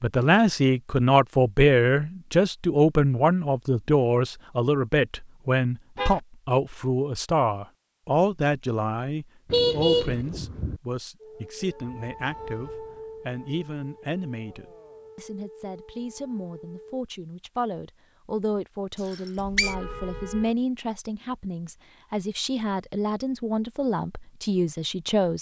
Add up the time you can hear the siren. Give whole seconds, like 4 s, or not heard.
6 s.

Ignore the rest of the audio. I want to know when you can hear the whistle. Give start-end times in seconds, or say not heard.
18.9-19.8.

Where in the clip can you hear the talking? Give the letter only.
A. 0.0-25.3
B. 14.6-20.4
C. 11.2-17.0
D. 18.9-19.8
A.